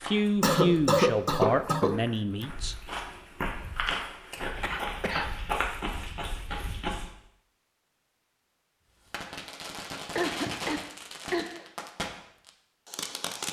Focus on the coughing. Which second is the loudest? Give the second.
1 s.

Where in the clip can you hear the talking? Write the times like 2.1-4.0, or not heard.
0.0-2.8.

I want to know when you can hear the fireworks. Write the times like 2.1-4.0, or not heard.
9.1-13.4.